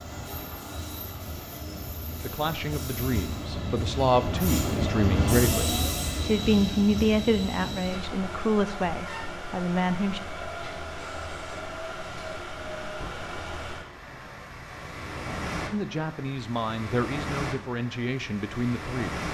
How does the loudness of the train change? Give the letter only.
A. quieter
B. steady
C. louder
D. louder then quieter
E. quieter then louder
D.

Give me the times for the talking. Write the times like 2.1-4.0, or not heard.
2.2-10.2, 15.7-19.2.